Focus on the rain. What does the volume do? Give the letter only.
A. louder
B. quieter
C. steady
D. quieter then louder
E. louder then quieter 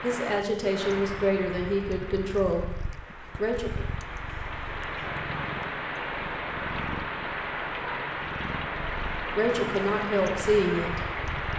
A.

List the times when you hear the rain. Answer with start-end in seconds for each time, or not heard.
0.0-11.5.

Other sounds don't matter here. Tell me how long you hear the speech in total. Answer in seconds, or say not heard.
6 s.